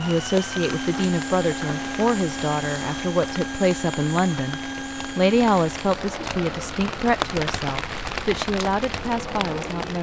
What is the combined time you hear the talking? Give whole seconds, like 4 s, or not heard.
10 s.